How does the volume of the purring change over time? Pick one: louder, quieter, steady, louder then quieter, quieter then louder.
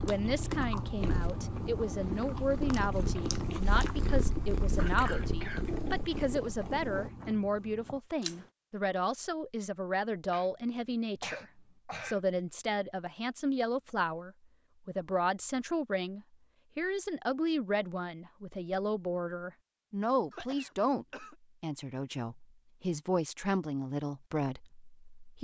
louder.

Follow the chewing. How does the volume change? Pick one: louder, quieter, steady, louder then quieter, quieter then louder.
quieter.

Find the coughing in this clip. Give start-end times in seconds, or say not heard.
4.8-5.7, 10.3-12.2, 20.3-21.4.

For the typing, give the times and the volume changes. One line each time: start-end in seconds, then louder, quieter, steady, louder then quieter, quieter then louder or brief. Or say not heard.
not heard.